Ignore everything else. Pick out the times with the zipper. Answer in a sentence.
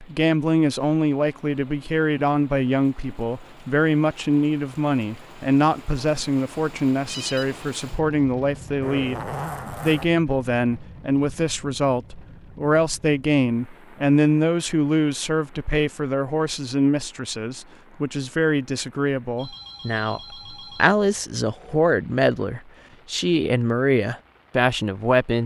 You can hear the zipper from 8.8 to 10.1 s.